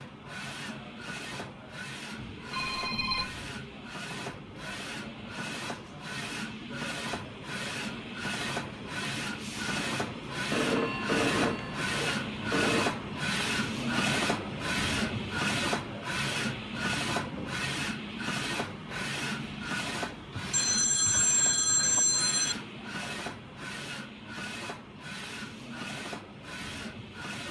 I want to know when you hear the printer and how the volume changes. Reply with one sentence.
The printer can be heard from 0.0 to 27.4 s, getting louder then quieter.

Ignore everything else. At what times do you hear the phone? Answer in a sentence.
You can hear the phone from 2.5 to 3.4 s, from 10.5 to 12.9 s and from 20.5 to 22.6 s.